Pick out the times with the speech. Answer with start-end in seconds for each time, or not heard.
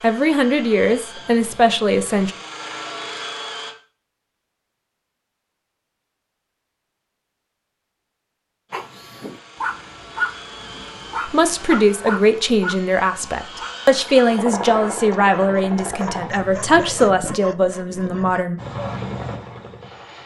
0.0-2.3, 11.2-18.6.